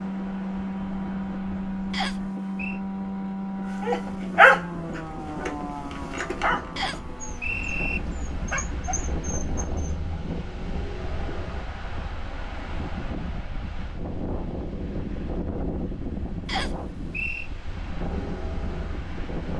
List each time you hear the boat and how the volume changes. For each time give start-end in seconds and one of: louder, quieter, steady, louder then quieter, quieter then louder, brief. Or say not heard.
0.0-11.7 quieter
17.9-19.5 brief.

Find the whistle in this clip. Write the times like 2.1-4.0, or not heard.
1.9-2.8, 6.8-8.0, 16.4-17.5.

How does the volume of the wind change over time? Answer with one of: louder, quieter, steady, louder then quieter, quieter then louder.
louder.